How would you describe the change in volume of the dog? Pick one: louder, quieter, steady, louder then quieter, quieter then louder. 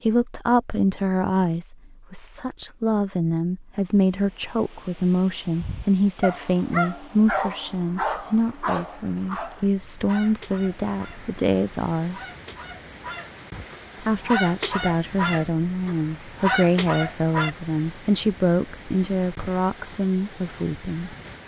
quieter then louder.